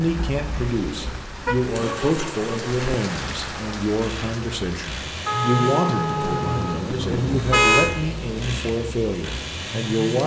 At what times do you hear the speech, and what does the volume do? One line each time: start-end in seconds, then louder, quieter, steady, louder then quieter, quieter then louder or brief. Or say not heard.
0.0-10.2 steady.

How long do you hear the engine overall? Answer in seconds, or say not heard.
10 s.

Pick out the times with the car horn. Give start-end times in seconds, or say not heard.
0.6-1.6, 5.2-7.9.